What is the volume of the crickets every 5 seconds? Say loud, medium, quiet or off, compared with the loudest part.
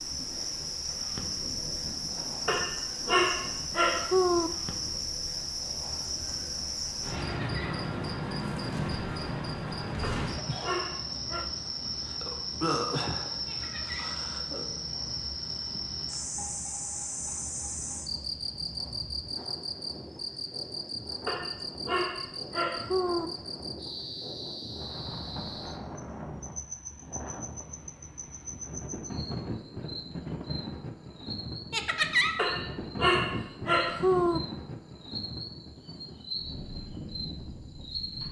loud, loud, loud, loud, medium, medium, medium, medium.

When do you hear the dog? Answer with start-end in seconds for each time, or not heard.
2.5-4.5, 10.0-11.5, 21.2-23.3, 32.4-34.4.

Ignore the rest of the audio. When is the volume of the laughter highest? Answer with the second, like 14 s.
32 s.